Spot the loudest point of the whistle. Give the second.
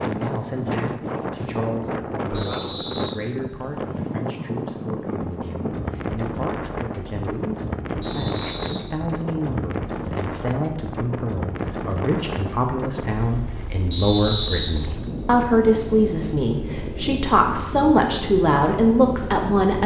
14 s.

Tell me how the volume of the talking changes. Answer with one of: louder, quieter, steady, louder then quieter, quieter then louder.
louder.